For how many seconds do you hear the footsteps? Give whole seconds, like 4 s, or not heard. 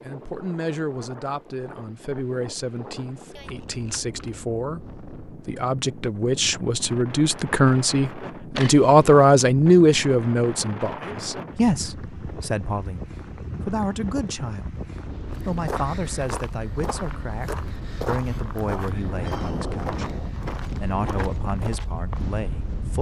7 s.